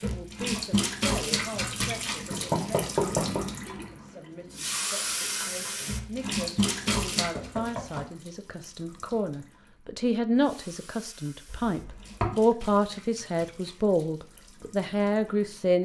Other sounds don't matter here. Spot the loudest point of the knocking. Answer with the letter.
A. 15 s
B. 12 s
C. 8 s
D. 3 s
D.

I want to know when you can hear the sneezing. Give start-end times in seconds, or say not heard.
not heard.